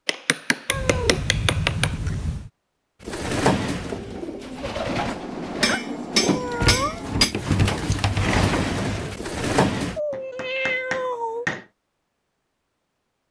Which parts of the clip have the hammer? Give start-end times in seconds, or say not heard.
0.1-1.9, 4.8-7.3, 10.1-11.7.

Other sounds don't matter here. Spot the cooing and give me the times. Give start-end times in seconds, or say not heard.
3.0-10.0.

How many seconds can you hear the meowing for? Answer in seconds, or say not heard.
5 s.